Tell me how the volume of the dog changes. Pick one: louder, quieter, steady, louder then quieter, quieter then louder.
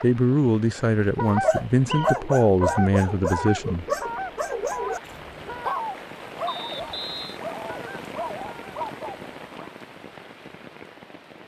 quieter.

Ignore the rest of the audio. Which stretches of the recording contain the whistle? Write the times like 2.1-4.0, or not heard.
1.5-2.1, 6.5-7.4.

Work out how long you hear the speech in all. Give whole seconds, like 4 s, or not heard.
4 s.